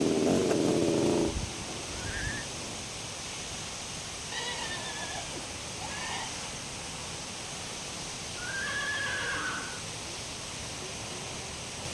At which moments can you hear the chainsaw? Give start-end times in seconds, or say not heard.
0.0-2.9.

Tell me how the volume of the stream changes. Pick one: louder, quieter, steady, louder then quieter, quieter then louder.
steady.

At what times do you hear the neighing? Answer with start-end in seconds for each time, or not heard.
1.1-2.5, 4.3-6.3, 8.4-9.8.